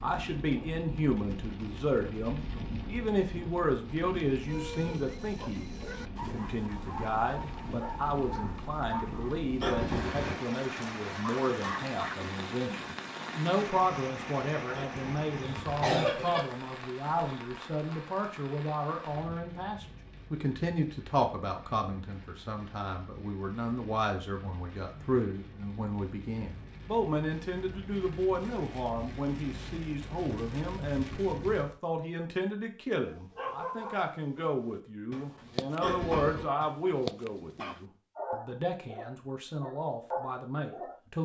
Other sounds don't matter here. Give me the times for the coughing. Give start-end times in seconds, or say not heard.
9.6-10.3, 14.8-16.4, 35.8-36.5.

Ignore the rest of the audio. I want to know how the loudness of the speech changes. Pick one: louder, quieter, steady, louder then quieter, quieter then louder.
steady.